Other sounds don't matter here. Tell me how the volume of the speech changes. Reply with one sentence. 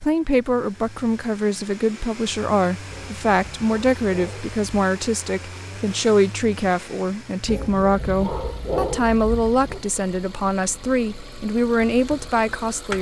The loudness of the speech stays about the same.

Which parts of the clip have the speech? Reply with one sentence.
You can hear the speech from 0.0 to 12.9 s.